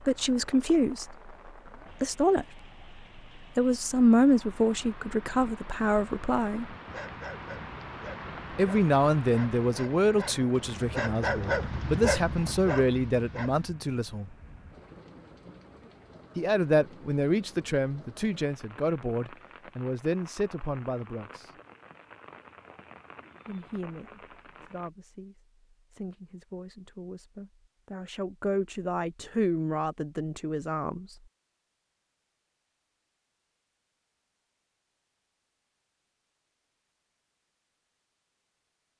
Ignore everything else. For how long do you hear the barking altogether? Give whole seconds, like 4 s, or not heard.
7 s.